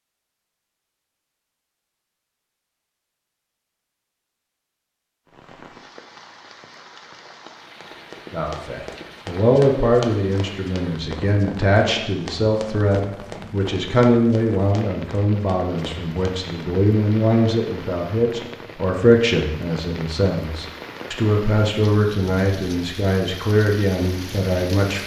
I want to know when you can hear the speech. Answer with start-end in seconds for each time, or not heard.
8.3-25.0.